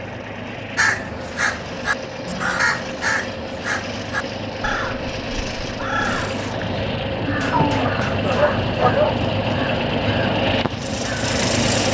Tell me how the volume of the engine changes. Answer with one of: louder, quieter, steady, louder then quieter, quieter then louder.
louder.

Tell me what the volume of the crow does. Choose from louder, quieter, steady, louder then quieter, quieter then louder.
quieter.